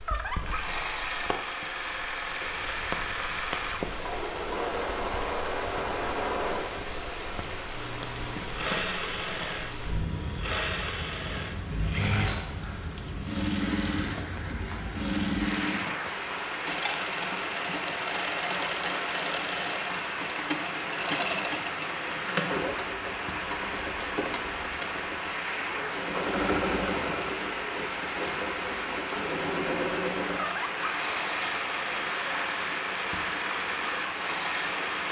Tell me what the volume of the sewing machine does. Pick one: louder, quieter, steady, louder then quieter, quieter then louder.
steady.